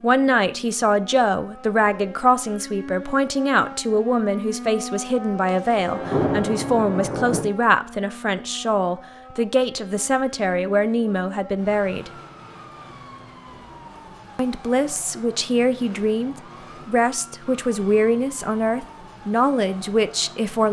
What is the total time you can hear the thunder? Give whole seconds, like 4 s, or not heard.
2 s.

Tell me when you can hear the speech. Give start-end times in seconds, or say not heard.
0.0-12.1, 14.3-20.6.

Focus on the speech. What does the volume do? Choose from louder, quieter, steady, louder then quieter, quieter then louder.
steady.